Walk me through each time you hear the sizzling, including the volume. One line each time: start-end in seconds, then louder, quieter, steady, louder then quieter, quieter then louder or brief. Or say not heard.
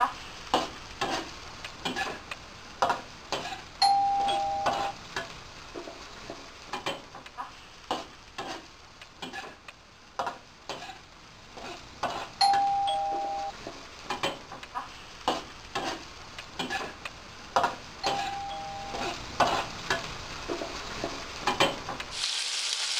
0.0-22.9 quieter then louder.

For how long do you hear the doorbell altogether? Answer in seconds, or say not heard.
3 s.